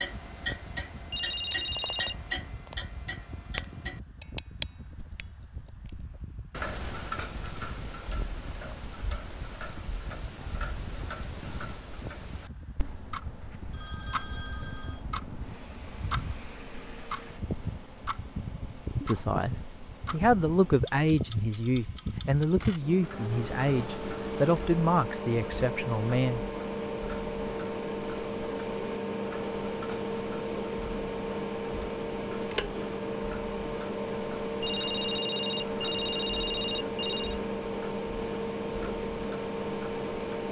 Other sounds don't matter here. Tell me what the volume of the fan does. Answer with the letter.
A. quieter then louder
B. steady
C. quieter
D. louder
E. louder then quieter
D.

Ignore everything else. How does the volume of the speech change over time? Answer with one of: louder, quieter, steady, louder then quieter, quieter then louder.
steady.